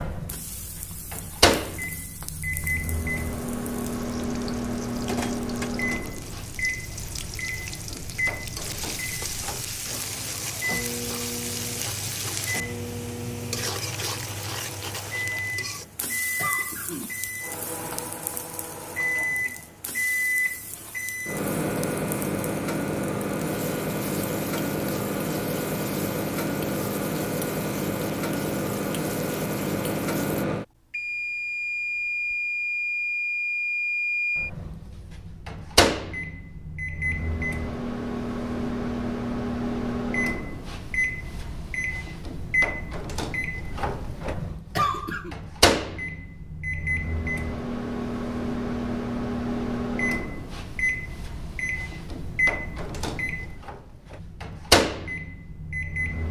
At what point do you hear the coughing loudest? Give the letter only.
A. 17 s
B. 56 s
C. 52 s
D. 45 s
D.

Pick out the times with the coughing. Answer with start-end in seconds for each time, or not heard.
16.4-17.3, 44.8-45.4.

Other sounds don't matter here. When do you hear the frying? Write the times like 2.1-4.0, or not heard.
0.0-30.4.